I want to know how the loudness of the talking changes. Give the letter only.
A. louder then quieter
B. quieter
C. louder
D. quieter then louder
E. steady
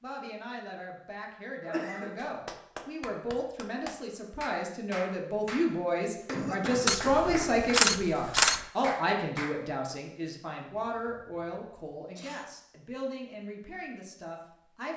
A.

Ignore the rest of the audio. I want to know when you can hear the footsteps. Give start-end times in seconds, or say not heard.
not heard.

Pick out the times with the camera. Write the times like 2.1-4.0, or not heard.
6.8-8.7.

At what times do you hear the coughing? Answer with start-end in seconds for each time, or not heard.
1.6-2.1, 6.2-7.5, 10.8-12.4.